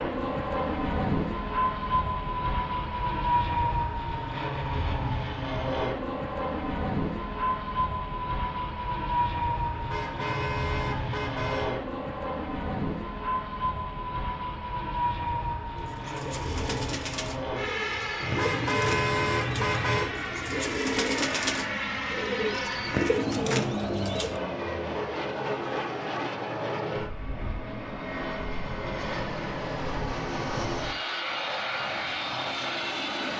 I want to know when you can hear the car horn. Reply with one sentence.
The car horn can be heard from 9.7 to 11.7 s and from 18.2 to 20.1 s.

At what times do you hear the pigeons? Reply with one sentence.
You can hear the pigeons from 15.8 to 24.4 s.